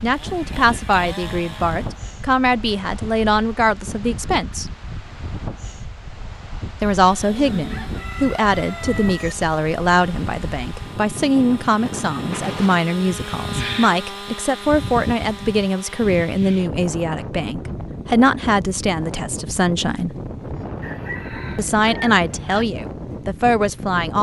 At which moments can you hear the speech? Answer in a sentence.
You can hear the speech from 0.0 to 4.7 s, from 6.8 to 20.1 s and from 21.6 to 24.1 s.